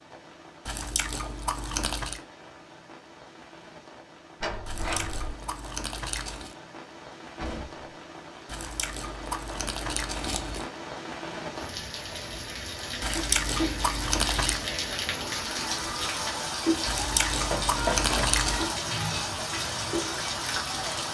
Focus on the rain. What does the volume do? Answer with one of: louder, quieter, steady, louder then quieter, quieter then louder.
louder.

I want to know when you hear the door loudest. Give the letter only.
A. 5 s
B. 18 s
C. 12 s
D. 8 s
B.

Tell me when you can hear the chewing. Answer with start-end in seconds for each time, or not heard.
0.7-2.2, 4.7-6.5, 8.4-10.7, 13.0-14.7, 16.9-18.8.